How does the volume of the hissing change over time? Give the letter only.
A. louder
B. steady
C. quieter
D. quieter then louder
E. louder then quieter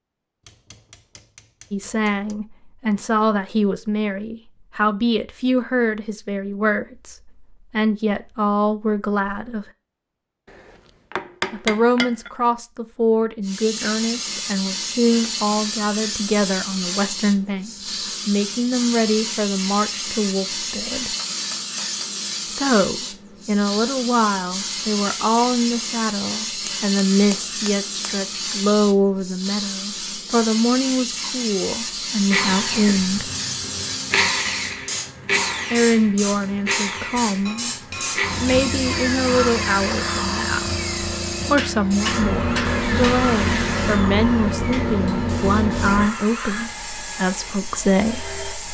B.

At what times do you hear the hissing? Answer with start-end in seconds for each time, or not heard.
13.4-48.6.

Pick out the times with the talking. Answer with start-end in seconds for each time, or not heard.
1.7-9.7, 11.5-21.1, 22.4-33.3, 35.7-37.7, 38.3-48.4.